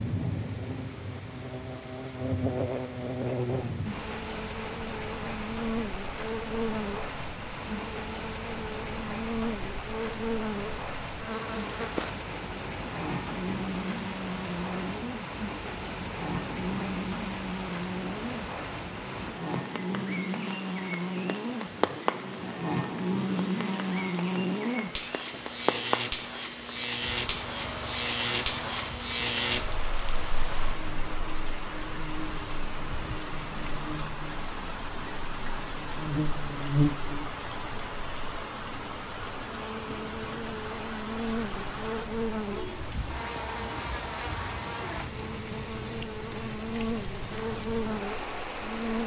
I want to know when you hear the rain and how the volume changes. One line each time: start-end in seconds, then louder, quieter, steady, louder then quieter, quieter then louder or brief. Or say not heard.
0.0-49.0 steady.